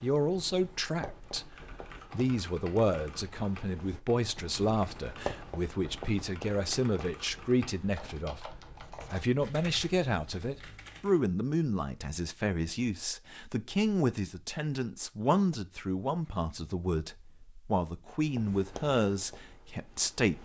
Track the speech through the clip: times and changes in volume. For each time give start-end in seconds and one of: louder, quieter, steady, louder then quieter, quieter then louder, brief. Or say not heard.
0.0-20.4 steady.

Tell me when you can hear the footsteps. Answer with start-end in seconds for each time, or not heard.
not heard.